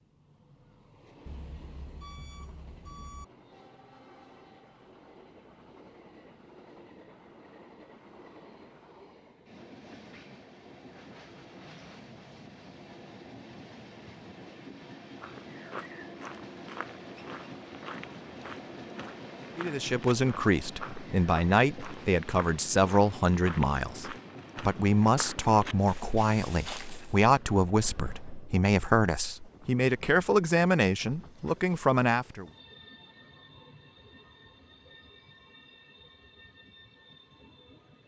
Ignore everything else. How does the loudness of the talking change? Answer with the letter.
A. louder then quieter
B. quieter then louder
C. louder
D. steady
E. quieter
D.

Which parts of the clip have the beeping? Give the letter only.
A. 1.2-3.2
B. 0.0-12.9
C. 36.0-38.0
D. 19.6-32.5
A.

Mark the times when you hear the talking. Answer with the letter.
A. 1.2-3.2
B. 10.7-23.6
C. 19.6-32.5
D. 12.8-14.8
C.